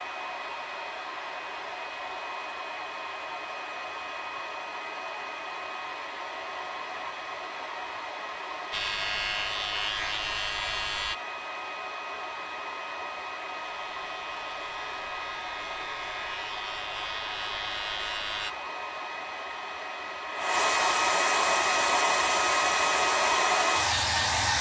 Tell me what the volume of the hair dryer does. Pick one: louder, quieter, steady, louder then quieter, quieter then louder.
louder.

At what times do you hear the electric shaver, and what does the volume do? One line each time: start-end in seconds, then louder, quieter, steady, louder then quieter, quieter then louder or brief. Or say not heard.
8.7-11.2 brief
13.6-18.6 louder.